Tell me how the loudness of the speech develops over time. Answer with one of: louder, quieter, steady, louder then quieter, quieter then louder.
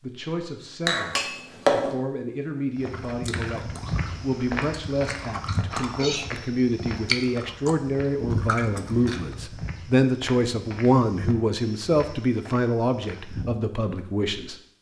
louder.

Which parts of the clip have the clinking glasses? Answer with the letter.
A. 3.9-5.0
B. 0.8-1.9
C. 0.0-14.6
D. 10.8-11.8
B.